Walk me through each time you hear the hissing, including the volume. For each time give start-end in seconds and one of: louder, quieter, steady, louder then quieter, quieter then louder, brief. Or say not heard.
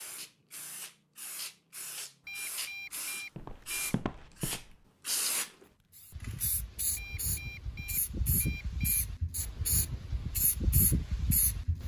0.0-11.8 louder.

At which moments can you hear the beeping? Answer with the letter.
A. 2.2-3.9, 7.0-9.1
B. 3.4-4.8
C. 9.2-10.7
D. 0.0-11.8
A.